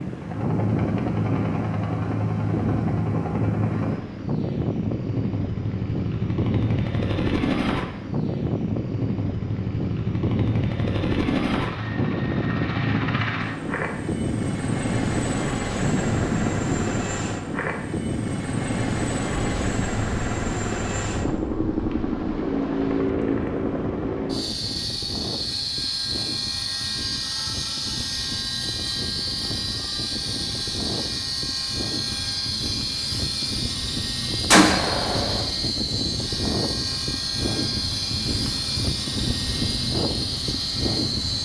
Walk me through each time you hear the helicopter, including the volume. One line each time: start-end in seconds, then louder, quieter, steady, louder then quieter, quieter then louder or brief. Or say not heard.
0.0-41.4 steady.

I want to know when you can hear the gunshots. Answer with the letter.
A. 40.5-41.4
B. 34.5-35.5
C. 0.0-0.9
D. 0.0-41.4
B.